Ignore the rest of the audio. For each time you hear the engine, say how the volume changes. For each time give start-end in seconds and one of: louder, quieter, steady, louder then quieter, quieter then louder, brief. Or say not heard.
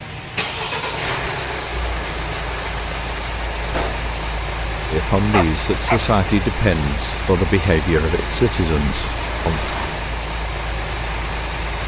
0.0-11.8 steady.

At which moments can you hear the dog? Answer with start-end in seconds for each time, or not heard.
5.3-6.0.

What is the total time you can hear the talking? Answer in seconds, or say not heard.
5 s.